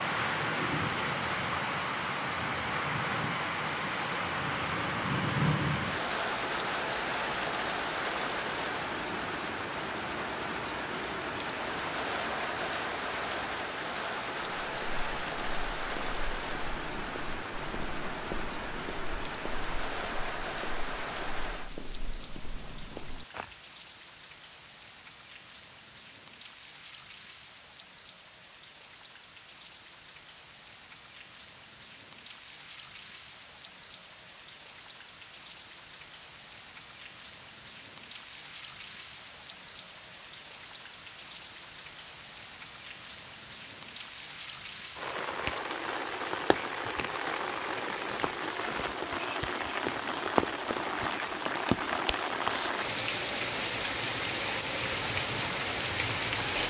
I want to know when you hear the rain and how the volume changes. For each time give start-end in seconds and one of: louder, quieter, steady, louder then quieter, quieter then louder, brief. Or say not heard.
0.0-56.6 quieter then louder.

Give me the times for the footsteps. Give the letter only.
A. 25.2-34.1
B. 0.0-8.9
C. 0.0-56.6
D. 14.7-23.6
D.